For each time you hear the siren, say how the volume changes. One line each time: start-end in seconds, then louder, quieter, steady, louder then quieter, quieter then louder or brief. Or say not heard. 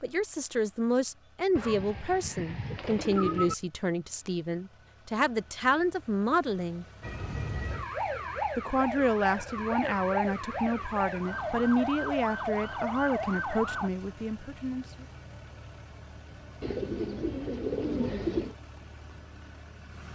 7.0-13.9 steady.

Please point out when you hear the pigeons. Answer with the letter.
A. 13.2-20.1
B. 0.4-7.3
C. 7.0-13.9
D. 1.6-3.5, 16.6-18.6
D.